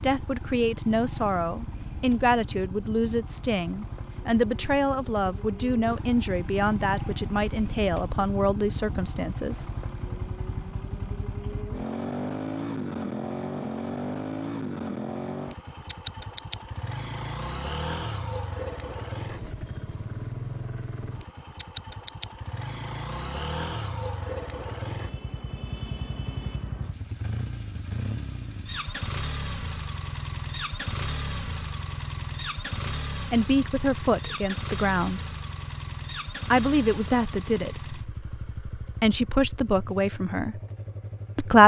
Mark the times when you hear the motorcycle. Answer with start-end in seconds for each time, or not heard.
0.0-41.6.